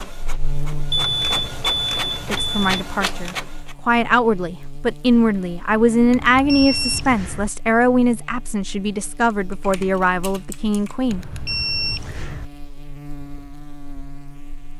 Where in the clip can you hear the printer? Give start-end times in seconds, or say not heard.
0.0-3.8.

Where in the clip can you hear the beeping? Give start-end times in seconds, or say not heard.
0.9-2.9, 6.1-7.5, 11.1-12.4.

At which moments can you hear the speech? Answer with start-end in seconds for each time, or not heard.
2.3-11.2.